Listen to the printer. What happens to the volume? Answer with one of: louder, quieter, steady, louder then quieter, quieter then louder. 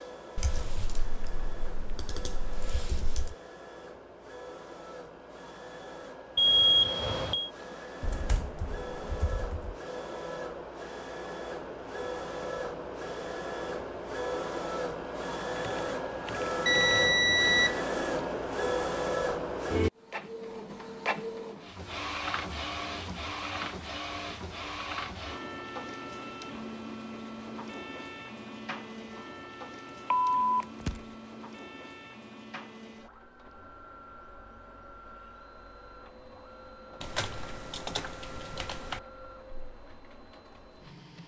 louder then quieter.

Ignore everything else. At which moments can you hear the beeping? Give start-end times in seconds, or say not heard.
6.3-7.5, 16.6-17.8, 30.1-31.0.